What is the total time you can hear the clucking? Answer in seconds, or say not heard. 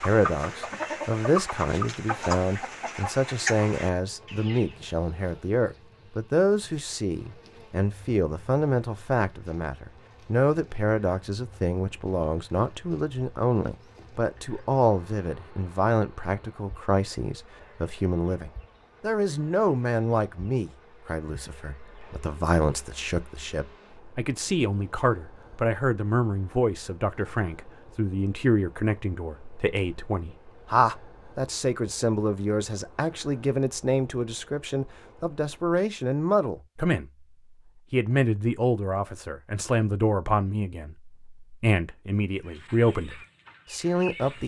7 s.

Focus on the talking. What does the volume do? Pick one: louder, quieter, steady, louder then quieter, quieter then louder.
steady.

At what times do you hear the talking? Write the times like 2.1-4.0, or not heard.
0.0-37.0, 37.9-44.4.